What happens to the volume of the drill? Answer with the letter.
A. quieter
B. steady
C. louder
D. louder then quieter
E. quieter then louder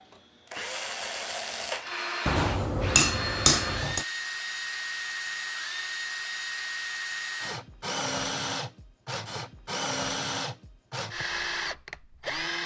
B.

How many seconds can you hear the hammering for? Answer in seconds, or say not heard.
2 s.